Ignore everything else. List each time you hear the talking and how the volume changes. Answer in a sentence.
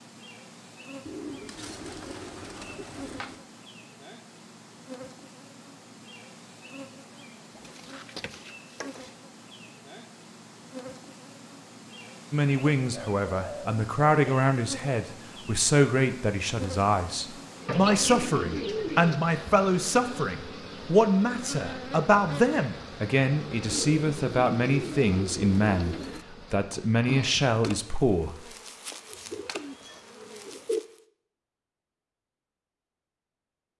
The talking can be heard from 12.3 to 28.3 s, at a steady volume.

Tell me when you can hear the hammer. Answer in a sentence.
You can't hear the hammer here.